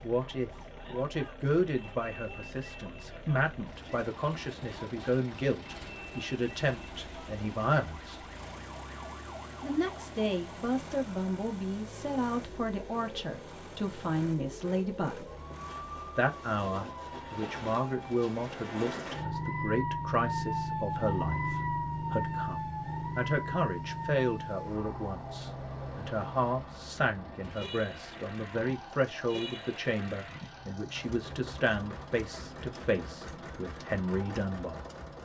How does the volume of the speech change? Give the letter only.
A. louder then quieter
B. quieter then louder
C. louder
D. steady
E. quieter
D.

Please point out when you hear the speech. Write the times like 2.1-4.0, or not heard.
0.0-8.2, 9.6-15.3, 16.1-34.9.